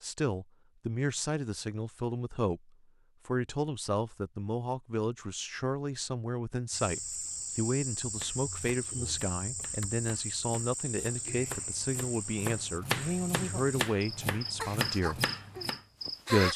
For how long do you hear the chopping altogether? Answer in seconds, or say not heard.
8 s.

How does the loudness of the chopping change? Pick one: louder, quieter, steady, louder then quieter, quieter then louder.
louder.